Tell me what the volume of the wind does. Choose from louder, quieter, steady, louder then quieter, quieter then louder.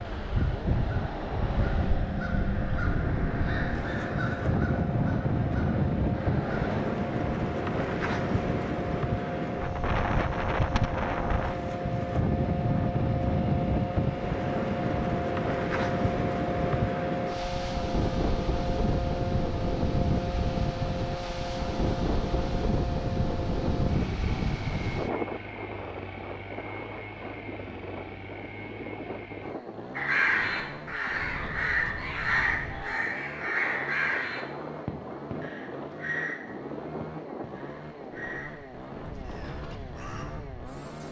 quieter.